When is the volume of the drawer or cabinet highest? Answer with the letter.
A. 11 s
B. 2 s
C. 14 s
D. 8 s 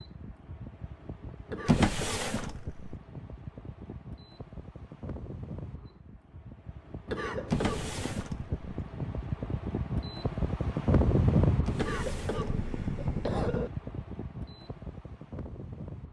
B.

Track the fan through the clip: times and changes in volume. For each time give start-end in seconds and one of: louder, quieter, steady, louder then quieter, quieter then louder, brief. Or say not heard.
0.0-16.0 louder then quieter.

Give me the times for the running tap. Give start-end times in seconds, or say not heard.
not heard.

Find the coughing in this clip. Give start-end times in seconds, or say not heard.
1.4-2.4, 7.0-8.2, 11.8-13.7.